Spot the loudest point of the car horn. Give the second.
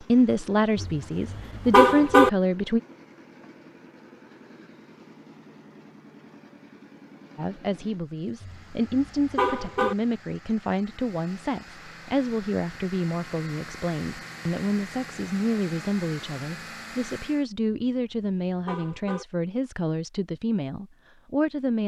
2 s.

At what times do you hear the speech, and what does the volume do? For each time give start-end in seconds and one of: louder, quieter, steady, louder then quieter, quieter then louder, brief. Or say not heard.
0.1-2.8 brief
7.3-21.8 steady.